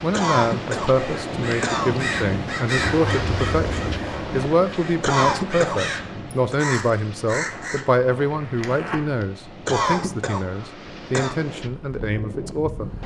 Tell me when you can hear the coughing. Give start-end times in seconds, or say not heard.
0.1-1.9, 5.0-6.5, 9.7-11.3.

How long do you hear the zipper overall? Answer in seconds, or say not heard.
3 s.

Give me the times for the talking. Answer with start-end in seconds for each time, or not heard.
0.0-12.9.